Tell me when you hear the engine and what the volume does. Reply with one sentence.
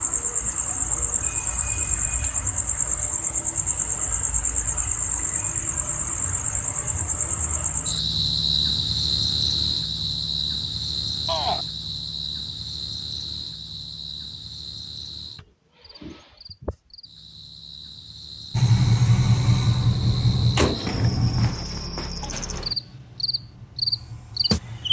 You can hear the engine from 18.5 to 24.8 s, getting quieter.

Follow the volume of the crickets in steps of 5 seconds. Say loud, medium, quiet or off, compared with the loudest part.
loud, loud, medium, quiet, medium.